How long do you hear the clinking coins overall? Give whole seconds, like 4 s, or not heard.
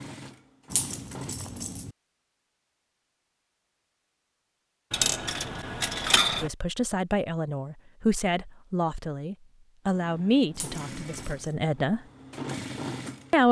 4 s.